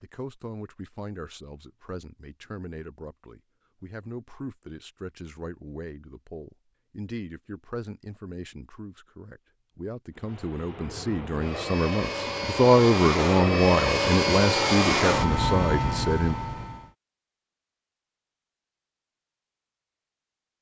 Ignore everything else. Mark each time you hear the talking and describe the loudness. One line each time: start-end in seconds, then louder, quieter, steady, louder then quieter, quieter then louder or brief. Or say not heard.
0.0-16.4 louder.